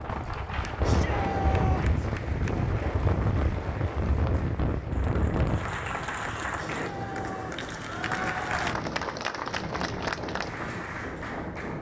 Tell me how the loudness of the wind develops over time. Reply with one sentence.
The loudness of the wind goes down.